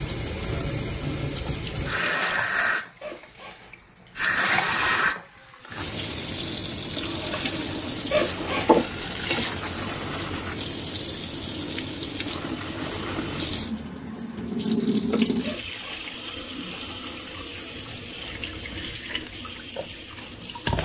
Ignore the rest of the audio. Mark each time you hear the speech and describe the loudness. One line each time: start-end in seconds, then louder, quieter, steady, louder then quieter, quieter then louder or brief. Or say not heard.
not heard.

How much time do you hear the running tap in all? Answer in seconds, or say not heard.
21 s.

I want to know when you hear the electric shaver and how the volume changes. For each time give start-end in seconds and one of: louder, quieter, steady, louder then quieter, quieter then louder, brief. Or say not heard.
not heard.